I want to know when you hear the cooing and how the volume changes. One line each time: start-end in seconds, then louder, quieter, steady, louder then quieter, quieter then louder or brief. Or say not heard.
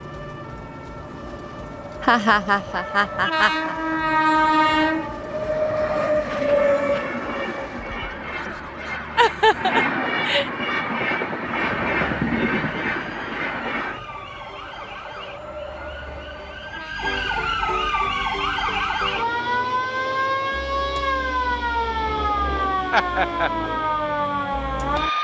not heard.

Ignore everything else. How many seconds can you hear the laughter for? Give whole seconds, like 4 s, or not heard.
4 s.